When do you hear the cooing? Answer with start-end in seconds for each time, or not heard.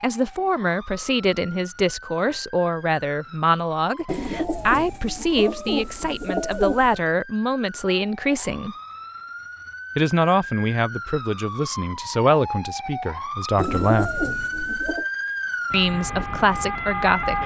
4.0-7.0, 13.6-15.1.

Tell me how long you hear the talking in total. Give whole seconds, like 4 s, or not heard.
15 s.